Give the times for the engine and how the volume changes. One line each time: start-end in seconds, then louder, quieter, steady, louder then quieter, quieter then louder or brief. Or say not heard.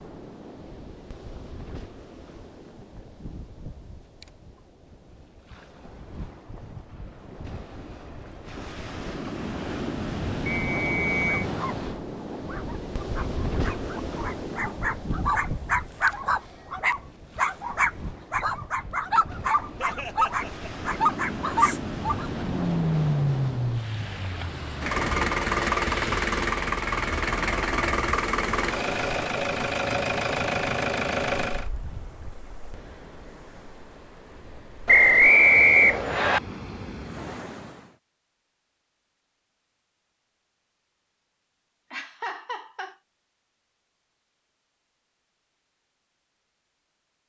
22.4-31.7 steady.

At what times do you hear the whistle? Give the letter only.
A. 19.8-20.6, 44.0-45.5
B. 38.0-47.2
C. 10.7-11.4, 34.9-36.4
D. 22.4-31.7
C.